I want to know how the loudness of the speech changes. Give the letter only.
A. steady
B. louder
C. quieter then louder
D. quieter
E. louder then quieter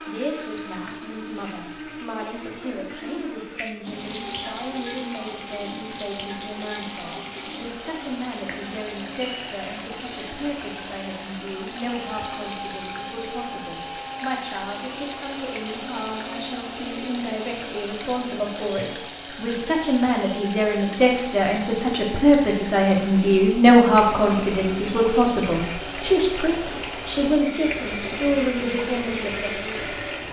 B.